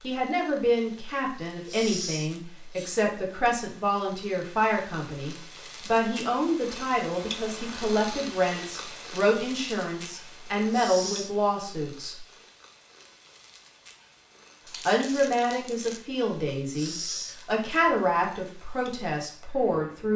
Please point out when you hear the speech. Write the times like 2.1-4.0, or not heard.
0.0-12.2, 14.8-20.1.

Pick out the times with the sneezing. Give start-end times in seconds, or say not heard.
1.6-2.9, 10.7-11.3, 16.8-17.4.